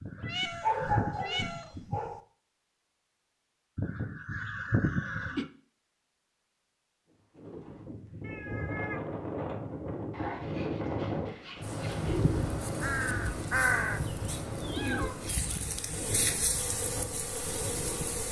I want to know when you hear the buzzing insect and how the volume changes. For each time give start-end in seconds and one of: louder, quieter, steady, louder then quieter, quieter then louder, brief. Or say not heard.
11.6-18.2 louder.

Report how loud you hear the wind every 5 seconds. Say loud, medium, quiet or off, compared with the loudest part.
off, loud, loud, medium.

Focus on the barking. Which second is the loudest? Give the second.
1 s.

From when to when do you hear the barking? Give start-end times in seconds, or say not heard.
0.4-2.2, 10.1-12.2.